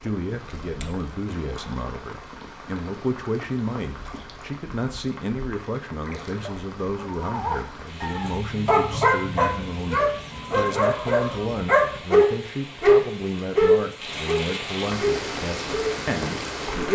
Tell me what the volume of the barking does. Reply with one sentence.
The volume of the barking goes up, then down.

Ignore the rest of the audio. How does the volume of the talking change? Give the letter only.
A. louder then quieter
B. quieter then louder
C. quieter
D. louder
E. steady
E.